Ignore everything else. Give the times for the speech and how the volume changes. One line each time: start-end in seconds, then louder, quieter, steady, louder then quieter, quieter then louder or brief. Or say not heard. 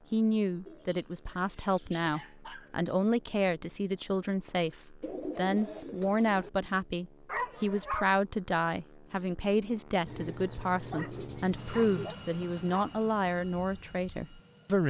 0.1-14.8 steady.